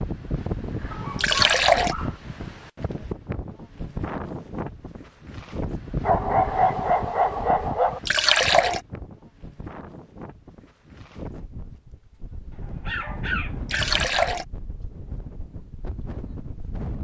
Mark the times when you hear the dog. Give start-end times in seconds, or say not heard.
0.9-2.2, 6.0-8.0, 12.5-14.3.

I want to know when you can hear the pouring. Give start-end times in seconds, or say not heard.
1.1-1.9, 8.1-8.8, 13.7-14.4.